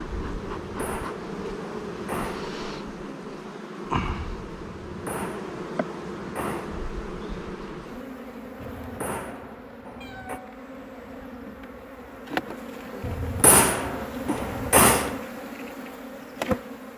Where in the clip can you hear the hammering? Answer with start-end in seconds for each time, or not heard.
0.6-2.5, 4.8-6.8, 8.6-10.4, 13.0-15.2.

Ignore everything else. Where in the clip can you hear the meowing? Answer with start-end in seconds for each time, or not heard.
10.0-11.3.